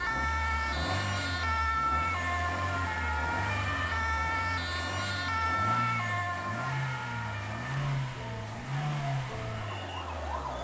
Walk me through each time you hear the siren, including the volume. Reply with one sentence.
The siren can be heard from 0.0 to 10.6 s, getting quieter.